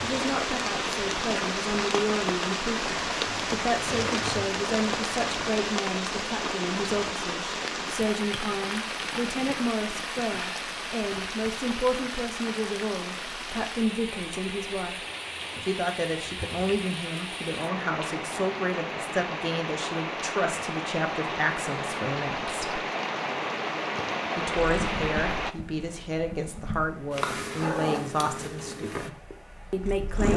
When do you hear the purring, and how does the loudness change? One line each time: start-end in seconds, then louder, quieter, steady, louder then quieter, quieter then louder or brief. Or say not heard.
3.2-5.7 brief
24.6-30.3 louder then quieter.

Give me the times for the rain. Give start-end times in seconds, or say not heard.
0.0-25.6.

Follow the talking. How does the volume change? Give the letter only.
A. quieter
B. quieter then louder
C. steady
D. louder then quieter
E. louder
C.